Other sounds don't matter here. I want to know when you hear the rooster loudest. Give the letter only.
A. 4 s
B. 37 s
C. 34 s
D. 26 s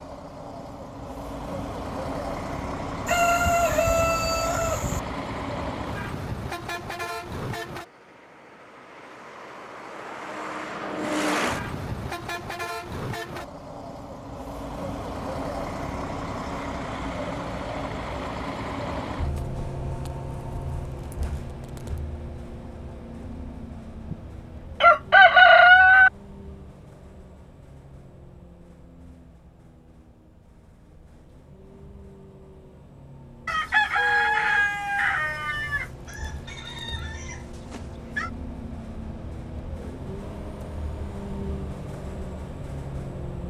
D.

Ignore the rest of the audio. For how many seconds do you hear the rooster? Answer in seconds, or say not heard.
8 s.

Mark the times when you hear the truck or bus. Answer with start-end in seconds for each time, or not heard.
0.0-43.4.